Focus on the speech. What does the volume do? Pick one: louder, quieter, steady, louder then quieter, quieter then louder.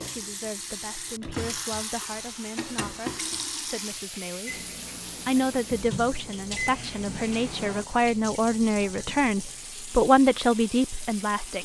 louder.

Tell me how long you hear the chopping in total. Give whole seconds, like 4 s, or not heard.
not heard.